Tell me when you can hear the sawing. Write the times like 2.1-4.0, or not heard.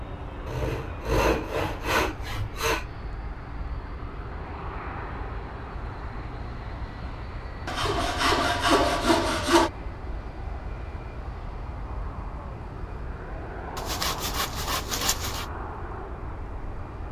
0.5-2.9, 7.7-9.7, 13.8-15.4.